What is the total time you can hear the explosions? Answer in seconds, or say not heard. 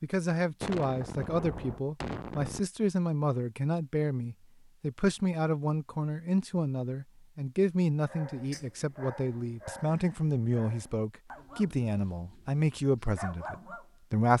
2 s.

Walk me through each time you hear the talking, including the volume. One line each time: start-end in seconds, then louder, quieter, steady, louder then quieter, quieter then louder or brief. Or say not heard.
0.0-14.3 steady.